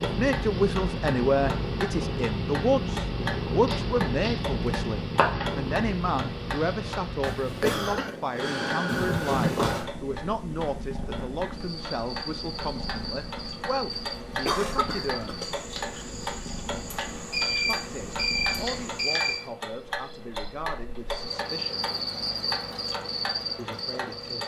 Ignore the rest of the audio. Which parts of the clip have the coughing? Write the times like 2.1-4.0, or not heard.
7.2-8.2, 13.9-15.6.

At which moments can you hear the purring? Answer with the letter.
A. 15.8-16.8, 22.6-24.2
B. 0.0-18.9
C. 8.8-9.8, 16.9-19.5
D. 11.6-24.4
B.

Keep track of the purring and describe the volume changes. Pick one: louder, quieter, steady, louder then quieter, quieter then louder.
quieter.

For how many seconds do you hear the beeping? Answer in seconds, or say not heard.
4 s.